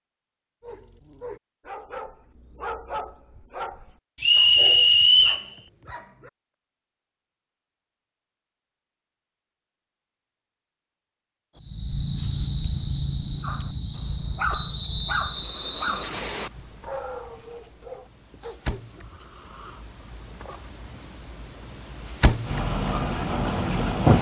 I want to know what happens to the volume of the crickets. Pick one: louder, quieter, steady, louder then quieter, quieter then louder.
quieter then louder.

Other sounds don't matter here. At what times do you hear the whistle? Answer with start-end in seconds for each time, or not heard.
4.2-5.5, 14.5-16.5.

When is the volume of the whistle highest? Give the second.
5 s.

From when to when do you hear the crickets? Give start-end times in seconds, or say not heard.
11.6-24.1.